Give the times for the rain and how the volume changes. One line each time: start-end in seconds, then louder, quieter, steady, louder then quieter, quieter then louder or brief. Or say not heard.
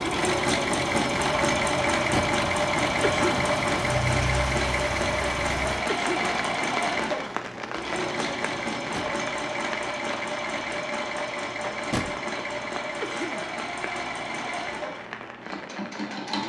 0.0-16.4 quieter.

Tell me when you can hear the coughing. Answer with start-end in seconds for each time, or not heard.
3.0-3.5, 5.9-6.3, 13.0-13.5.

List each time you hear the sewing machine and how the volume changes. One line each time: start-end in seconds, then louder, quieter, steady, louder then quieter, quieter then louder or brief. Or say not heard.
0.0-16.4 quieter.